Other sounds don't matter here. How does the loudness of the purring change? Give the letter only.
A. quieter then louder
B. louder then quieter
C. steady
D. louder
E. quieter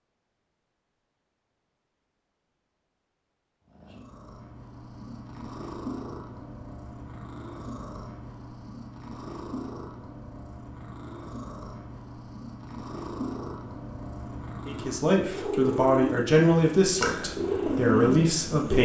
D.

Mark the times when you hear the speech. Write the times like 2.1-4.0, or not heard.
14.7-18.7.